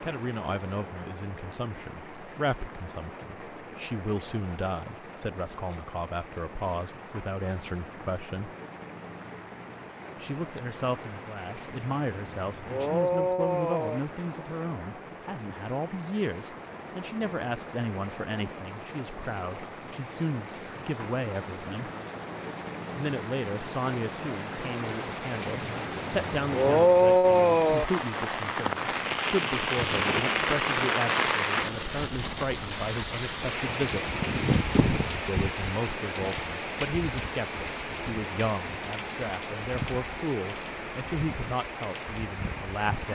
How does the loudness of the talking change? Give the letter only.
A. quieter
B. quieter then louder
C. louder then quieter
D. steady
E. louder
D.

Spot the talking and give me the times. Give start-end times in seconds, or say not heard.
0.0-8.5, 10.2-21.9, 22.9-34.1, 35.2-43.1.